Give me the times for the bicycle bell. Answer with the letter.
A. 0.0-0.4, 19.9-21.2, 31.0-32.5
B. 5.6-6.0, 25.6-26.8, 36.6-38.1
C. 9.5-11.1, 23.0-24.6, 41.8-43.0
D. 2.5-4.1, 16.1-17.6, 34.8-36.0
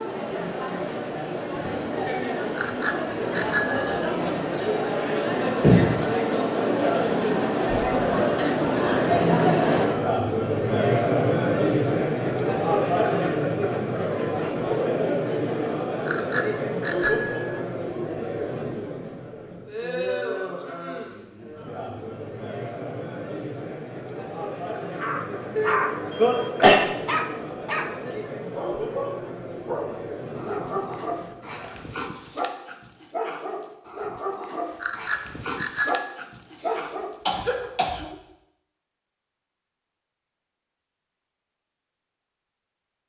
D.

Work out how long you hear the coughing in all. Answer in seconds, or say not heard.
3 s.